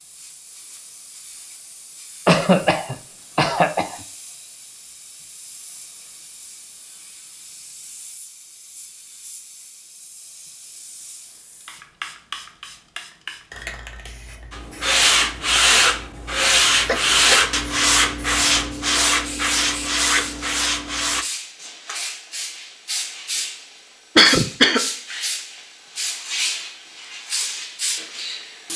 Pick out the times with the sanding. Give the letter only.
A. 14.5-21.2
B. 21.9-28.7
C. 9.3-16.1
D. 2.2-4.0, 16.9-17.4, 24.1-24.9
A.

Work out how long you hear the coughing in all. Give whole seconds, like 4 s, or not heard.
3 s.